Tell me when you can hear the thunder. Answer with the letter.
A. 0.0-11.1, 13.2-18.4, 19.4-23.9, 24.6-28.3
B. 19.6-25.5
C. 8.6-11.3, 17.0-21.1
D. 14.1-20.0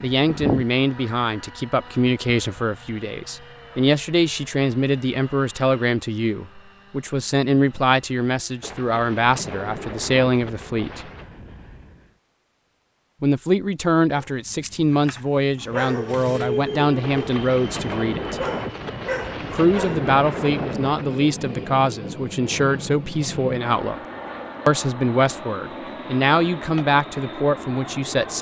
C.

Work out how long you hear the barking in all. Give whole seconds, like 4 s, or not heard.
6 s.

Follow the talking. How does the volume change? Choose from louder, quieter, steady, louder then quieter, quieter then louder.
steady.